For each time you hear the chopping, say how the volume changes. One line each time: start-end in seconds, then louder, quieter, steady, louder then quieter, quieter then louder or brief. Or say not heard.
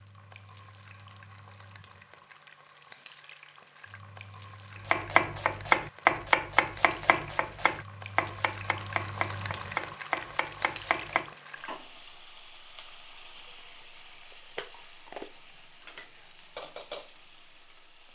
4.8-11.3 quieter.